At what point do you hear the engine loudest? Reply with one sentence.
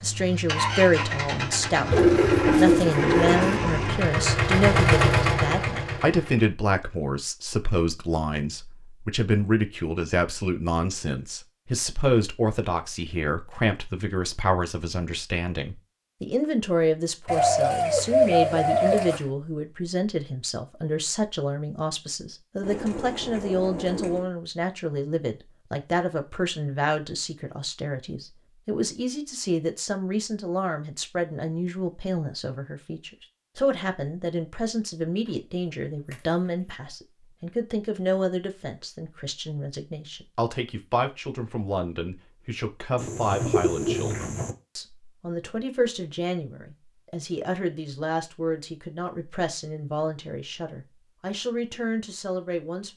The loudest moment of the engine is at 5 seconds.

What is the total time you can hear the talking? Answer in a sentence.
You can hear the talking for 53 seconds altogether.